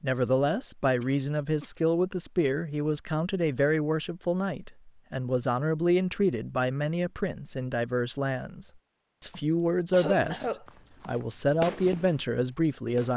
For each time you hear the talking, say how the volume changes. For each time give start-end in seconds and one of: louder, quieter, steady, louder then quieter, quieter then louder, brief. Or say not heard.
0.0-13.1 steady.